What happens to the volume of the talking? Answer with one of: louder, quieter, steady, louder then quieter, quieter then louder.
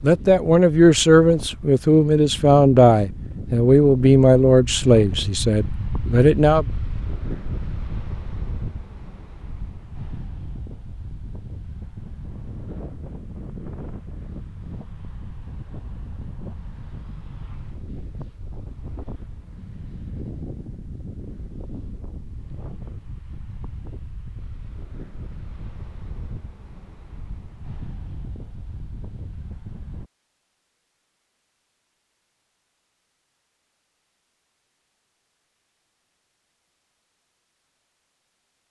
quieter.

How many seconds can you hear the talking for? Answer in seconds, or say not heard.
7 s.